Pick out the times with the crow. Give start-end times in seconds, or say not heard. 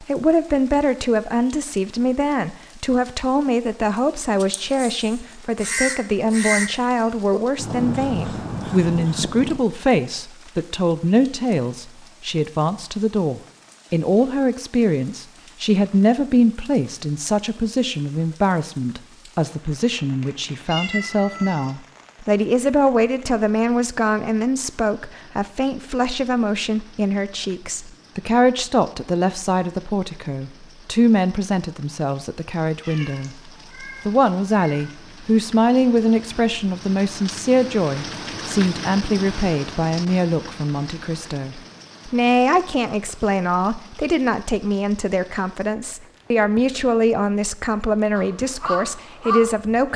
4.4-9.6, 48.1-49.5.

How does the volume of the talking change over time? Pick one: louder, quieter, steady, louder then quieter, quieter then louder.
steady.